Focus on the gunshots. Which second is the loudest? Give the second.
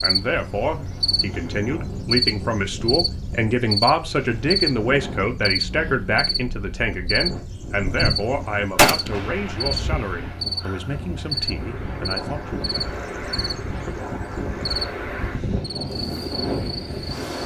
9 s.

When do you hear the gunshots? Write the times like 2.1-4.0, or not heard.
7.8-10.4.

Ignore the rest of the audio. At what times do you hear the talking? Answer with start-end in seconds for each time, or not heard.
0.0-12.6.